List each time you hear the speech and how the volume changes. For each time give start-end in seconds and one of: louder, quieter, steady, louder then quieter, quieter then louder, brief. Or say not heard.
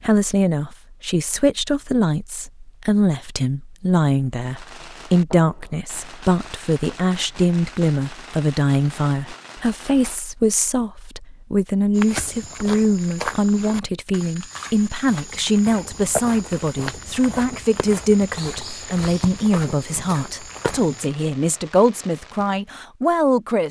0.0-23.6 steady.